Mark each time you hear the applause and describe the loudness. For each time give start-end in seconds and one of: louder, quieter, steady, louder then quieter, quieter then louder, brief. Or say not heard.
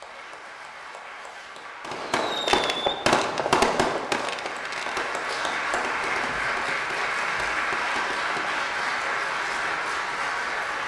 0.0-10.8 louder.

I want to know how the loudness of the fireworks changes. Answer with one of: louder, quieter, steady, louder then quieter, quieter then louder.
quieter.